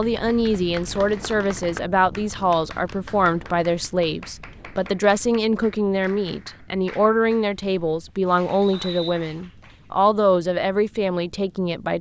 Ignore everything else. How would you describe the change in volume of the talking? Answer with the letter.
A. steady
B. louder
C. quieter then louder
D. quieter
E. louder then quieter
A.